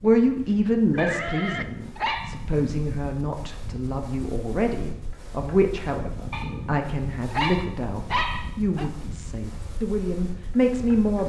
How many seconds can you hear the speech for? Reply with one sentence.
The speech can be heard for 11 seconds in total.